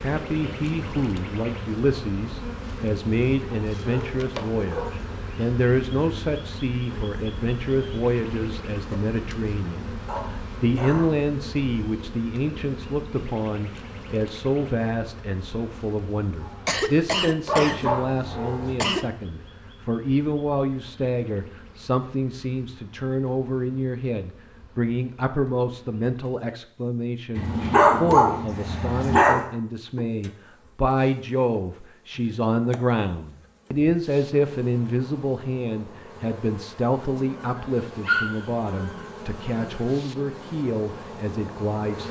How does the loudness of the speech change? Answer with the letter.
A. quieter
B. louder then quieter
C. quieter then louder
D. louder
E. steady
E.